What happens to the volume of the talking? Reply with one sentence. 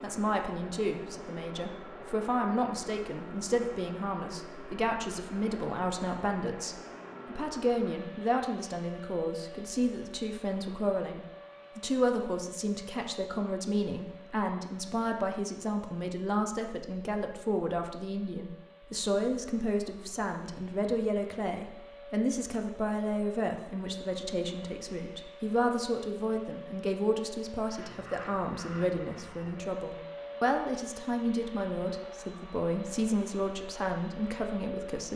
The loudness of the talking stays about the same.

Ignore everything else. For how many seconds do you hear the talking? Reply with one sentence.
The talking can be heard for 35 seconds in total.